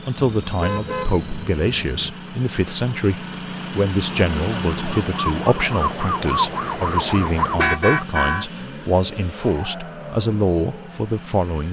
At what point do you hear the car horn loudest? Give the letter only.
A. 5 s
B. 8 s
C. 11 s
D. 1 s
B.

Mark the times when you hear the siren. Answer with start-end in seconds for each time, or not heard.
4.1-7.8.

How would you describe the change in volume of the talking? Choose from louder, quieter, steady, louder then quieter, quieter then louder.
steady.